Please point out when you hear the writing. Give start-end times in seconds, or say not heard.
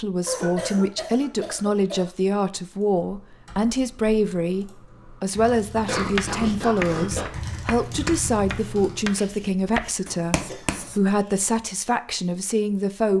5.8-11.0.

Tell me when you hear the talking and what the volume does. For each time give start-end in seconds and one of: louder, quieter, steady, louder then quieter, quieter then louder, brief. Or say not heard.
0.0-13.1 steady.